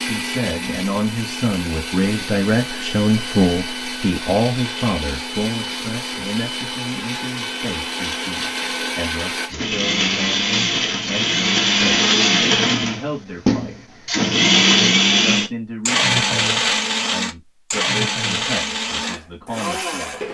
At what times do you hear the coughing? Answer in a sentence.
The coughing can't be heard in this clip.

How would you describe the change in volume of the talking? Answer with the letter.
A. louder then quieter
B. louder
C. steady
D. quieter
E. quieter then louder
D.